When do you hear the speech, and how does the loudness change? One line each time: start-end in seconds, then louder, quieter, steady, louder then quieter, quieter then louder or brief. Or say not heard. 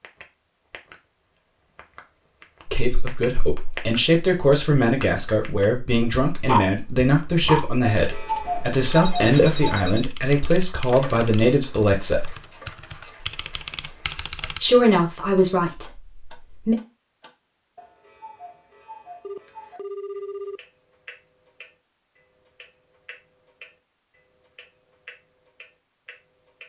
2.6-12.3 steady
14.6-16.8 brief.